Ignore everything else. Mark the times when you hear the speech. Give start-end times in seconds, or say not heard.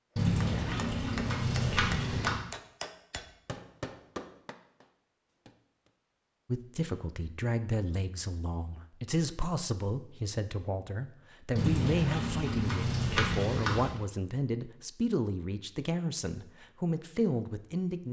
6.5-18.0.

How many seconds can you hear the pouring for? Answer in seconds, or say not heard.
5 s.